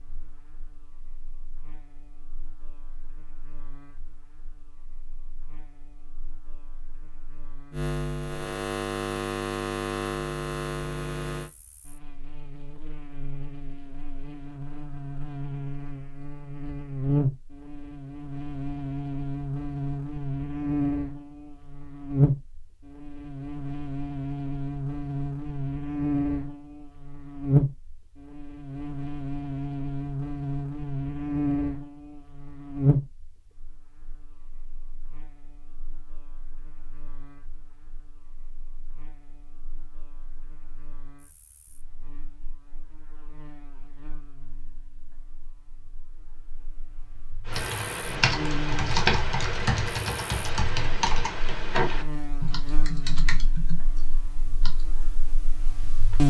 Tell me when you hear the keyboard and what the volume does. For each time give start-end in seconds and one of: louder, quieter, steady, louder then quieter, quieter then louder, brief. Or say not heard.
47.5-54.9 quieter.